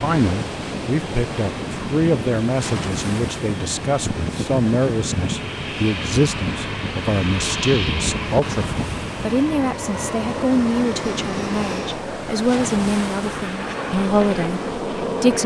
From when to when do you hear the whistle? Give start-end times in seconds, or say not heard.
not heard.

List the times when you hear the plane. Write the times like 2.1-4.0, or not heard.
0.0-15.4.